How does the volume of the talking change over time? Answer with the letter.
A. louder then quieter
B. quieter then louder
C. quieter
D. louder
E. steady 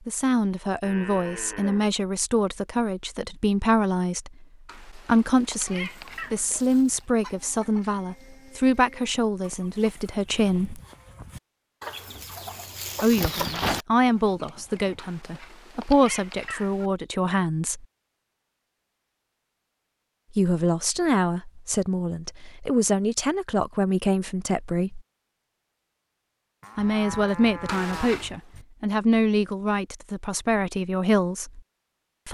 E.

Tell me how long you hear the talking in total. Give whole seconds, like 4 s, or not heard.
25 s.